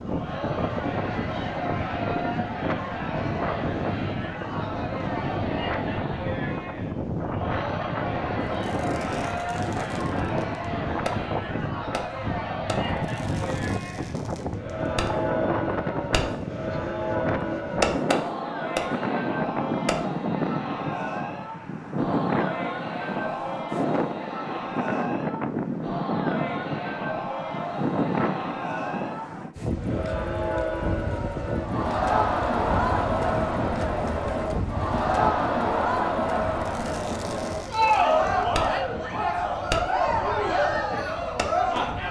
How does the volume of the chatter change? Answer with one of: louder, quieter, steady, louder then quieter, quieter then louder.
louder.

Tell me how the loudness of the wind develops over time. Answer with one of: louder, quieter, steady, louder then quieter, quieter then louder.
quieter.